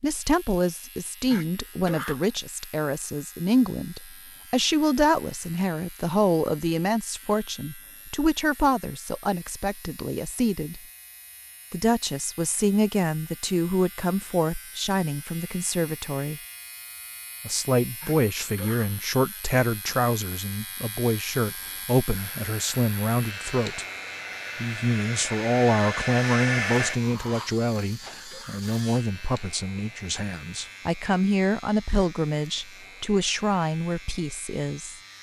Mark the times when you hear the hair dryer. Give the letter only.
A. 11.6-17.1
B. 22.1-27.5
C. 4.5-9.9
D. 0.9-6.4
B.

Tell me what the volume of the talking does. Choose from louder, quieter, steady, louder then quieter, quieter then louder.
steady.